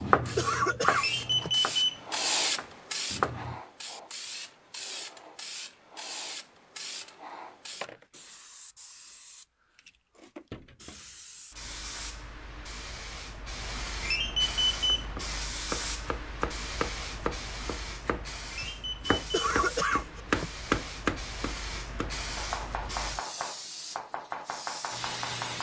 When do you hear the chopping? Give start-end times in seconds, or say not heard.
0.0-3.6, 14.8-25.5.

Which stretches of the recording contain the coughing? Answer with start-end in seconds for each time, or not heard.
0.3-1.5, 19.3-20.5.